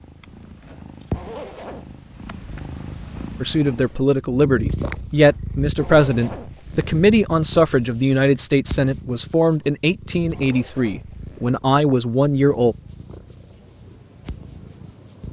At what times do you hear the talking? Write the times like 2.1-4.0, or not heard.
3.4-12.8.